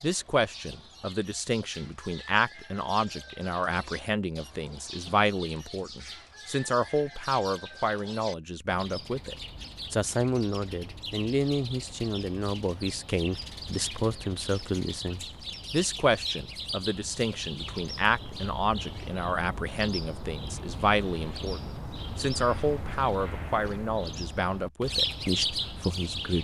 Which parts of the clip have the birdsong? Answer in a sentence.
The birdsong can be heard from 0.0 to 26.3 s.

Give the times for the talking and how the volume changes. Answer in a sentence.
The talking can be heard from 0.0 to 26.3 s, at a steady volume.